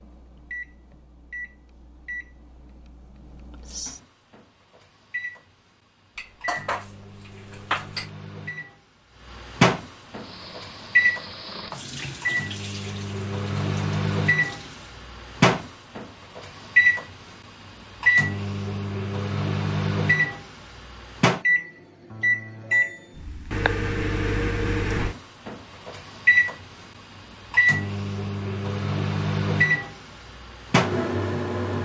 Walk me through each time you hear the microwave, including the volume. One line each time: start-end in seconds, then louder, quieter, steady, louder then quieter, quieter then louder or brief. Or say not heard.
0.0-31.8 louder.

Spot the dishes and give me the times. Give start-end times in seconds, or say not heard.
6.2-8.1.